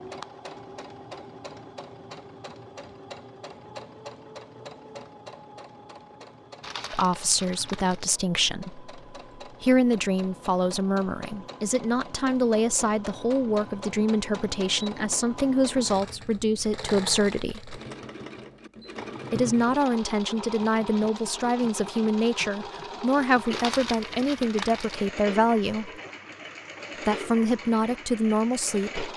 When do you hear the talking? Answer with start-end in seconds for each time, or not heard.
6.9-17.8, 19.3-25.9, 27.1-29.1.